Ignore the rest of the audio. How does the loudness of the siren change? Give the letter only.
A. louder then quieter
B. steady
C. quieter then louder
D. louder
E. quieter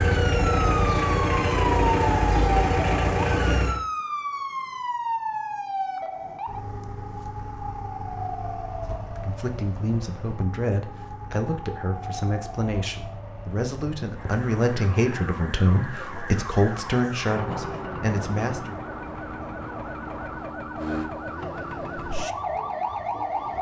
C.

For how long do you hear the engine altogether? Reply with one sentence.
The engine can be heard for 4 seconds in total.